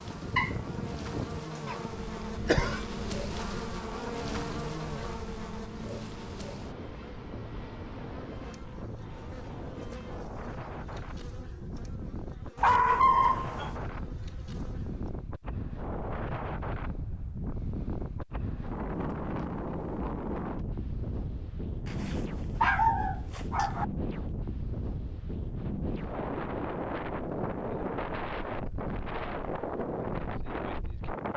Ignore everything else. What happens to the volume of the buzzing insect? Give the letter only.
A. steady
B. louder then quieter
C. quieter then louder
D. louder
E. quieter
E.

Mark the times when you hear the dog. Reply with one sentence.
You can hear the dog from 0.3 to 0.8 s, from 12.6 to 13.8 s and from 21.9 to 23.9 s.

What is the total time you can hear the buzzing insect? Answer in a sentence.
You can hear the buzzing insect for 15 seconds altogether.